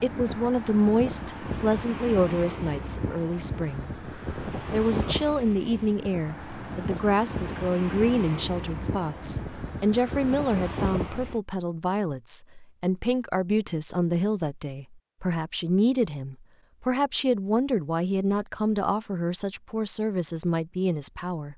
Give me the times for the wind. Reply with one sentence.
You can hear the wind from 0.0 to 11.4 s.